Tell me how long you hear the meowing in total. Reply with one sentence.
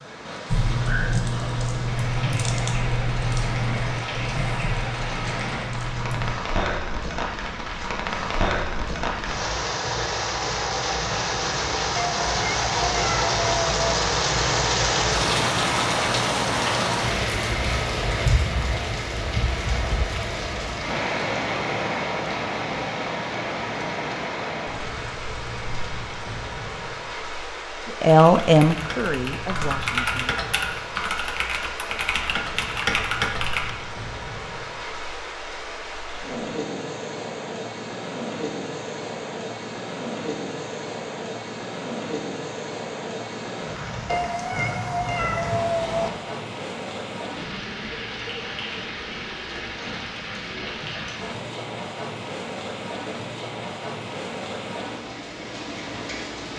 You can hear the meowing for 4 seconds altogether.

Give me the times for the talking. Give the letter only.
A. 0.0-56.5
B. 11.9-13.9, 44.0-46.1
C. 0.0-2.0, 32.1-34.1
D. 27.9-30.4
D.